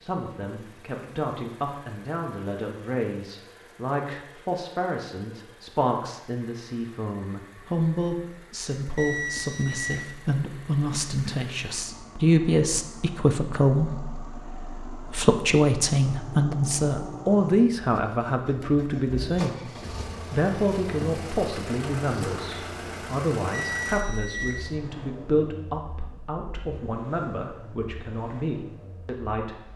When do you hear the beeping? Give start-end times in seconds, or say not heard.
8.9-10.2, 23.5-24.8.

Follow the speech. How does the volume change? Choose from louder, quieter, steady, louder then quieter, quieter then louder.
louder then quieter.